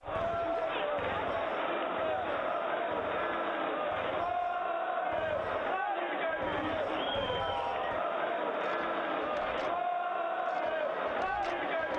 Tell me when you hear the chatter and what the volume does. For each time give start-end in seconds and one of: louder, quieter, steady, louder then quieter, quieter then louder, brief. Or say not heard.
0.0-11.9 steady.